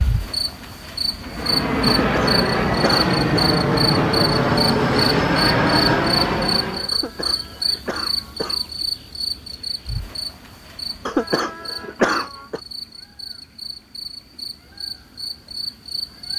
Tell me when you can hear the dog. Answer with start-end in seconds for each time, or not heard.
not heard.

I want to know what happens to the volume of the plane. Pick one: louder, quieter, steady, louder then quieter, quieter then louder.
steady.